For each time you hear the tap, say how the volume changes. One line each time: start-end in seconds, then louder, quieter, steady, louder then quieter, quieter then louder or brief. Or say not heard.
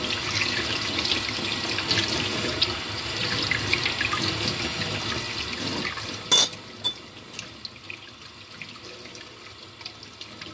0.0-10.5 quieter.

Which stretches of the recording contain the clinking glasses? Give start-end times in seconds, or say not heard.
6.1-7.0.